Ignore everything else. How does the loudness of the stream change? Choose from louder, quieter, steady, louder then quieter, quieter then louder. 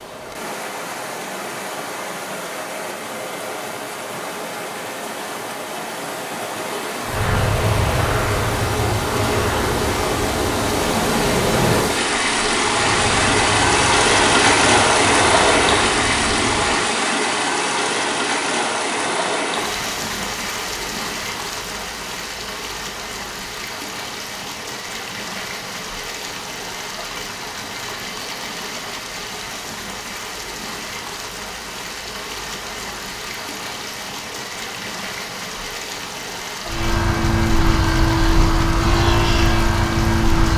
louder then quieter.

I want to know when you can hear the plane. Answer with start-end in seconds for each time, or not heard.
7.0-16.9, 36.6-40.5.